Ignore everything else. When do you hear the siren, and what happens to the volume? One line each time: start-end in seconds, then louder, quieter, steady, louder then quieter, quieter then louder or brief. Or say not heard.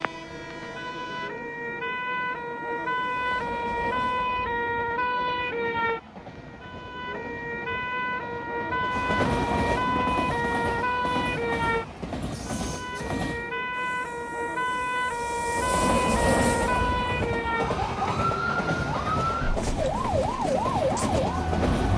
0.0-21.9 steady.